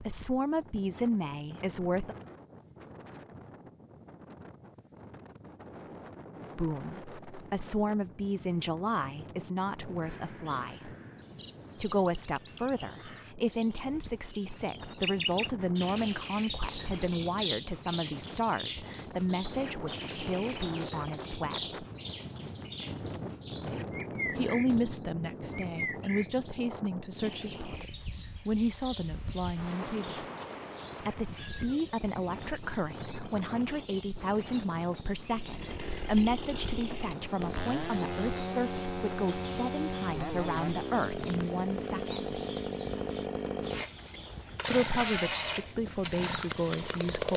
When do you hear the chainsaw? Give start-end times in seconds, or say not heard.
35.3-47.3.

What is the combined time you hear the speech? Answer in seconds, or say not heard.
36 s.